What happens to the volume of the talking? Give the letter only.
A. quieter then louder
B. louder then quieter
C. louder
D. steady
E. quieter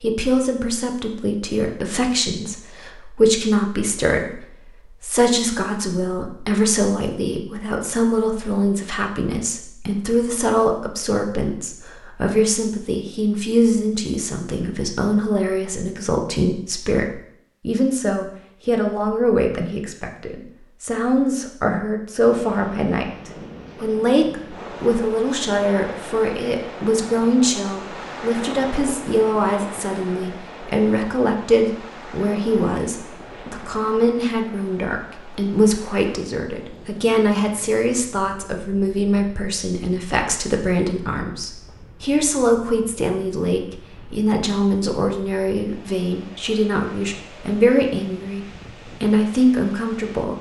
D.